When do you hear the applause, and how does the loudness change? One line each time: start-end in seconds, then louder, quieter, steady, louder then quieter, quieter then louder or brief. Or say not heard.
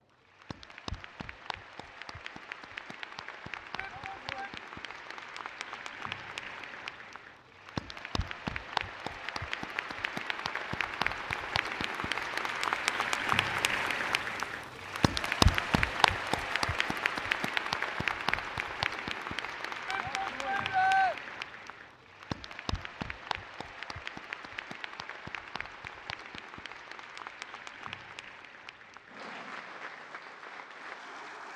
0.1-31.5 louder then quieter.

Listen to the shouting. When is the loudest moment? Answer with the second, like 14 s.
21 s.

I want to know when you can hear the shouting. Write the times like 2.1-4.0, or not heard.
3.8-4.5, 19.9-21.1.